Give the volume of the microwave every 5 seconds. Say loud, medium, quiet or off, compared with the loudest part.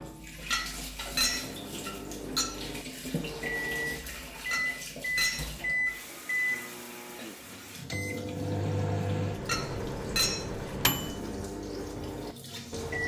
medium, loud, loud.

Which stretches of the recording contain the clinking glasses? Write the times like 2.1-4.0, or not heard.
0.5-2.5, 4.5-5.9, 9.4-10.4.